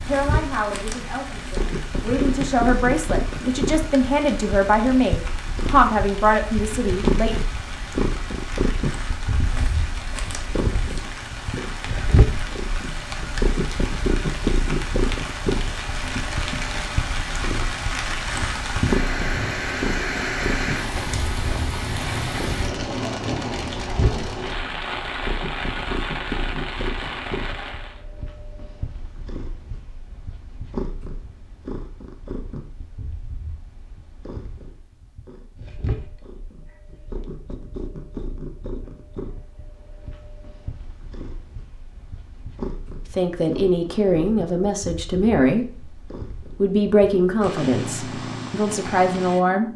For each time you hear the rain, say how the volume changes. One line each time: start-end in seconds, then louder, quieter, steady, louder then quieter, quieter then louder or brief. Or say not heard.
0.0-28.0 louder.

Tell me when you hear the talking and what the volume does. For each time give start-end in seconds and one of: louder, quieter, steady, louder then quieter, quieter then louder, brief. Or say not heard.
0.0-7.3 louder
43.0-49.7 steady.